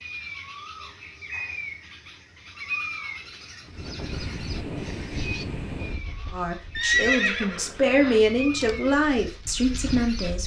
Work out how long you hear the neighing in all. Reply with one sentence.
The neighing can be heard for 2 seconds in total.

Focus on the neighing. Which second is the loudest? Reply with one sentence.
The volume of the neighing peaks at 7 seconds.